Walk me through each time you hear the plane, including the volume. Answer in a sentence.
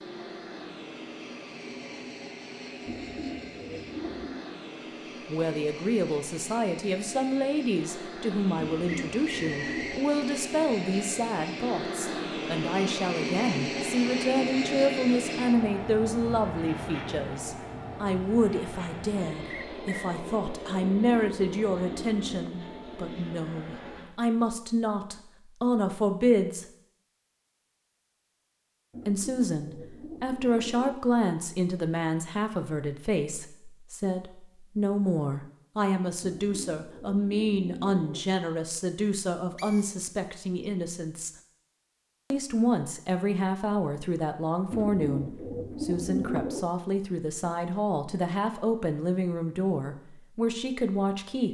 You can hear the plane from 0.0 to 24.1 s, getting louder then quieter.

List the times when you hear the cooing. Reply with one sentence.
You can hear the cooing from 2.9 to 4.4 s, from 8.6 to 10.1 s, from 20.8 to 22.6 s, from 28.9 to 30.9 s, from 36.2 to 38.2 s and from 44.7 to 46.6 s.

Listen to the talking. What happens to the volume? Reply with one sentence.
The loudness of the talking stays about the same.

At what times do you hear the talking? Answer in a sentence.
The talking can be heard from 5.2 to 26.6 s, from 29.1 to 41.3 s and from 42.3 to 51.4 s.